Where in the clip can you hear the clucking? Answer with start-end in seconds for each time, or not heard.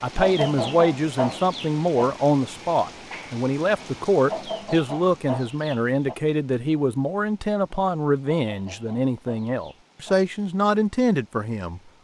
0.1-2.1, 4.2-6.2, 8.4-10.2.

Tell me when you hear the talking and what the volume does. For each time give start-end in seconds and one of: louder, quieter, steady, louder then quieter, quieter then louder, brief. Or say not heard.
0.0-11.8 steady.